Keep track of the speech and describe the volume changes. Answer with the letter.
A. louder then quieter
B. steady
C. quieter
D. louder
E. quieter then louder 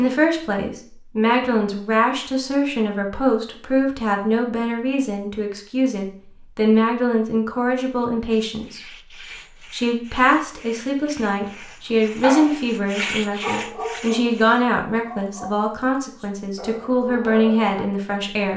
B.